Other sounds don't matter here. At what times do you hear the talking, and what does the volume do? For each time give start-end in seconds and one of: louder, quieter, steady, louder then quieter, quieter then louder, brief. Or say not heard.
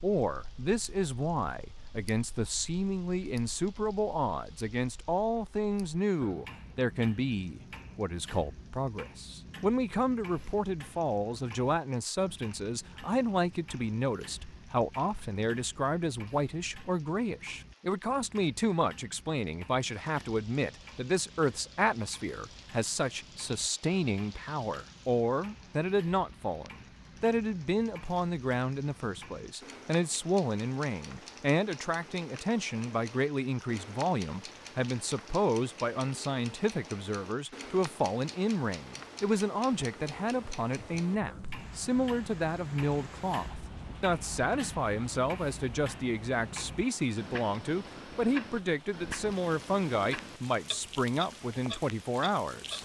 0.0-52.8 steady.